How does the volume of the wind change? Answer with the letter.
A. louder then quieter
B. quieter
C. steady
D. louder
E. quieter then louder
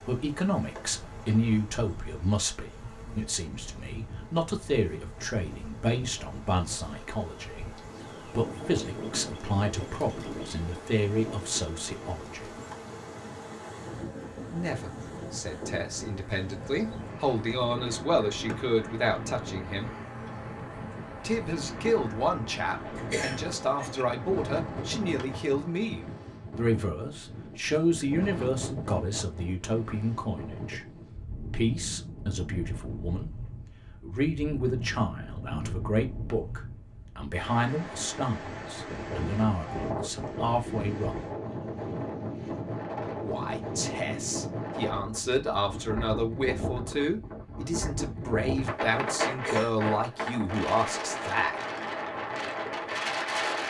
D.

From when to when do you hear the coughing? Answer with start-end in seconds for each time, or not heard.
22.9-24.1, 49.3-49.8.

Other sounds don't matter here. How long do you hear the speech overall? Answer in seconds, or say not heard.
46 s.